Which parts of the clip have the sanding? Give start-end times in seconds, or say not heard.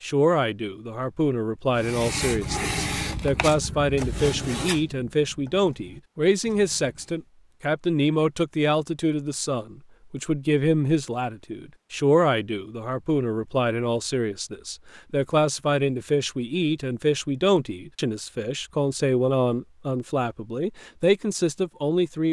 1.7-7.2.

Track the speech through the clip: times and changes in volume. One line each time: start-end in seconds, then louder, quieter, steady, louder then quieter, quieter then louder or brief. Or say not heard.
0.0-22.2 steady.